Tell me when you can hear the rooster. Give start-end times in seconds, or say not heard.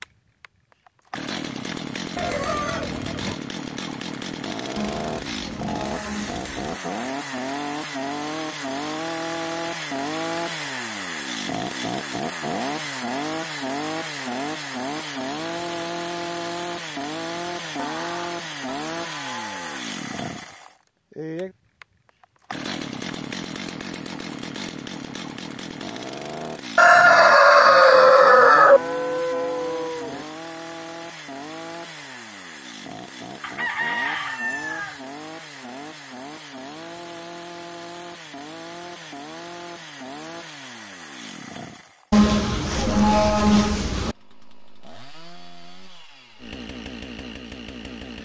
2.1-3.4, 26.8-28.8, 33.4-35.0.